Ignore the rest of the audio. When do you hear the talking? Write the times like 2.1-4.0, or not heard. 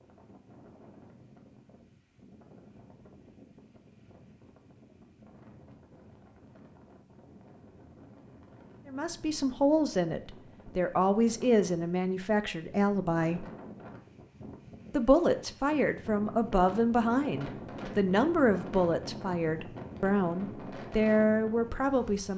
8.8-13.4, 14.9-22.3.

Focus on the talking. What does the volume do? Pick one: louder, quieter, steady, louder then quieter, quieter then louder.
steady.